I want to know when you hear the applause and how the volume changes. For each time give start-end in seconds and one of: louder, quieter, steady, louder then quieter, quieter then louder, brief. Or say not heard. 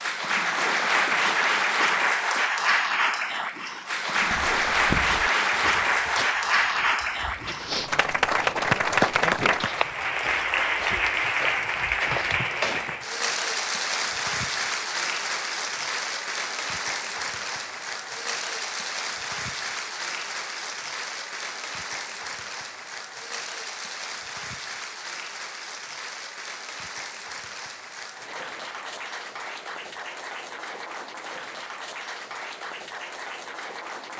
0.0-34.1 quieter.